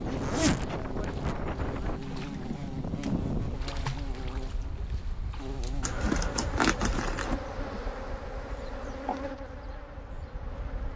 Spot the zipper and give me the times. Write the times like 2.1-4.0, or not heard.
0.1-1.4, 5.8-7.3.